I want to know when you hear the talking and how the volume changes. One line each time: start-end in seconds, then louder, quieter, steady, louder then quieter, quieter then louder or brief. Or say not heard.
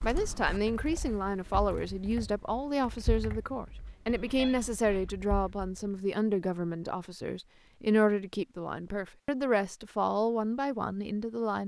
0.0-11.6 steady.